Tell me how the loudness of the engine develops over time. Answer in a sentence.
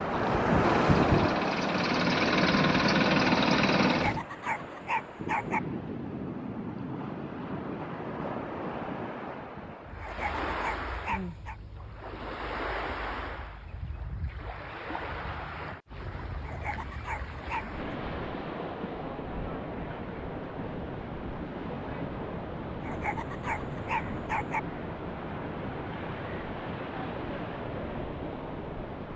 The loudness of the engine goes up.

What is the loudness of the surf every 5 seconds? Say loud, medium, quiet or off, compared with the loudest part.
loud, medium, medium, medium, medium, medium.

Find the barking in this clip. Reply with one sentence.
You can hear the barking from 3.9 to 5.6 s, from 10.0 to 11.6 s, from 16.4 to 18.0 s and from 22.8 to 24.6 s.